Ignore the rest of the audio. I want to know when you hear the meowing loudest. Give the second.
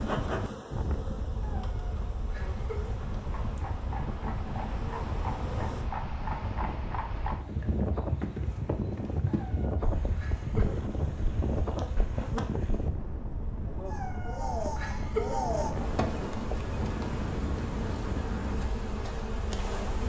15 s.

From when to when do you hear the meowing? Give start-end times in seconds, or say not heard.
1.4-3.0, 9.3-10.8, 13.9-15.4.